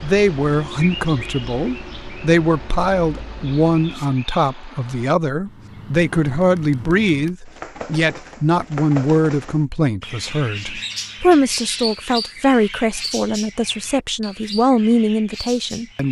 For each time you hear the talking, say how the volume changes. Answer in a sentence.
The talking can be heard from 0.0 to 16.0 s, at a steady volume.